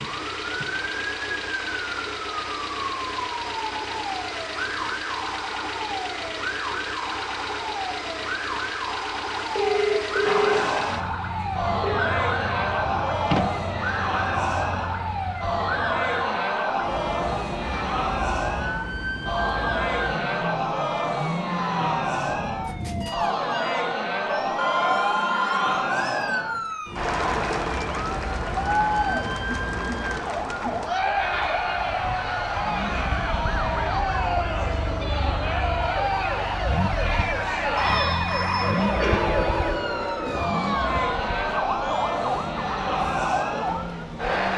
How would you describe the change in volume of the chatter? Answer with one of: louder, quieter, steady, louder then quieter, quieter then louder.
steady.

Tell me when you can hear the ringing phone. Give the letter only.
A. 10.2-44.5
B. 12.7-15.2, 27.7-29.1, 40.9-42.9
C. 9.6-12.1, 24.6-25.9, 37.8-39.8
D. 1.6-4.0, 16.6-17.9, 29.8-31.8
C.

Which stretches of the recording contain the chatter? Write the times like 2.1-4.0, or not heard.
10.2-44.5.